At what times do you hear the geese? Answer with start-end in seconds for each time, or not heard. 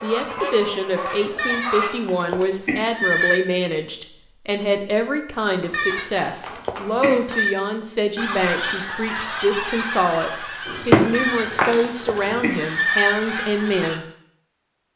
0.0-1.9, 8.2-14.0.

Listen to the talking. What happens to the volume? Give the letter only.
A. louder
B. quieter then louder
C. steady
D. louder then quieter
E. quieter
C.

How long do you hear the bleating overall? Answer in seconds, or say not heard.
6 s.